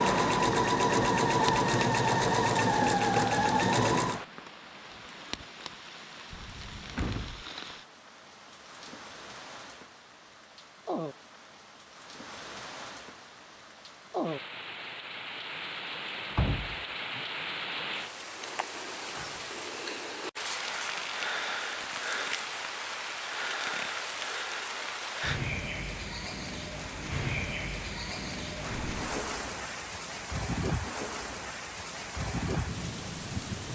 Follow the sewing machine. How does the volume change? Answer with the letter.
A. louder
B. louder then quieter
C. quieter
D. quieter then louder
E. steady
E.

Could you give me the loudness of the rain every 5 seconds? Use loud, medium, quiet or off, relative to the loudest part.
medium, medium, medium, loud, loud, loud, loud.